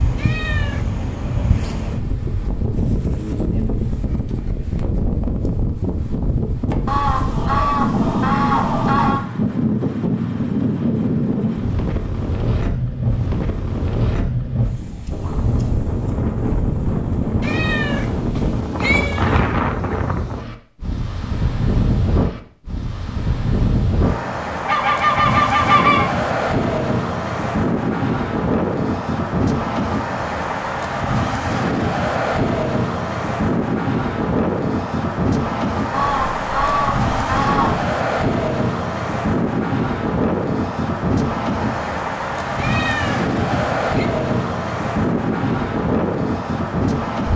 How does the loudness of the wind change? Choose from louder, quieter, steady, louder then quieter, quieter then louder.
steady.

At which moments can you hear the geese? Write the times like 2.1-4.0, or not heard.
6.8-9.2, 24.6-26.1, 35.9-37.9.